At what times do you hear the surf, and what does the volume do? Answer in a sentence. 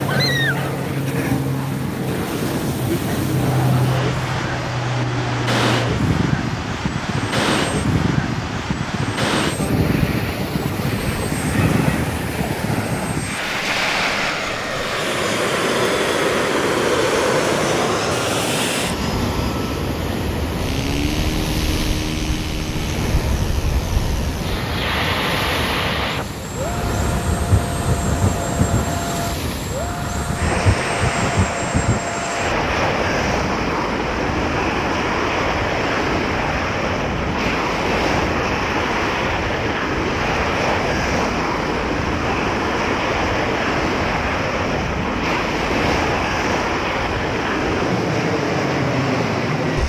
The surf can be heard from 0.0 to 49.8 s, at a steady volume.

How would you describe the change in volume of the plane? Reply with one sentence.
The volume of the plane stays about the same.